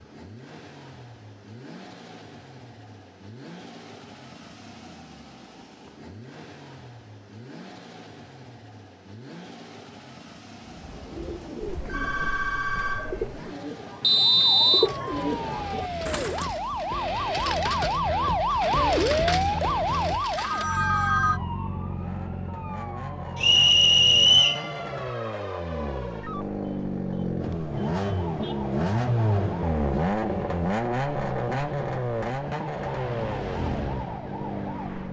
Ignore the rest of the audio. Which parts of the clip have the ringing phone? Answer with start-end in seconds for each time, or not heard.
11.7-13.5, 20.4-21.4.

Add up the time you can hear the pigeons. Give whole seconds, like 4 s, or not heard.
6 s.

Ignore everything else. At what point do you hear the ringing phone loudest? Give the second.
21 s.